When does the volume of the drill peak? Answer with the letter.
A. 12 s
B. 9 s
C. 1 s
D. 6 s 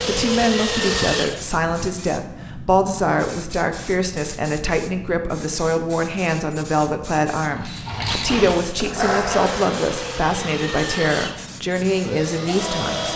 C.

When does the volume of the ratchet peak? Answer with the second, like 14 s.
9 s.